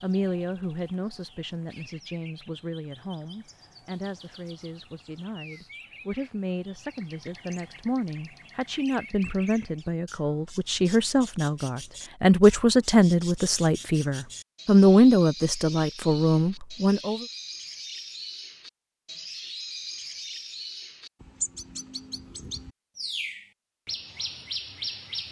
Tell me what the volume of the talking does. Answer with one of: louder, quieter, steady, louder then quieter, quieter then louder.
louder.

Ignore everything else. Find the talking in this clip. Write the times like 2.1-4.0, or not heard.
0.0-17.2.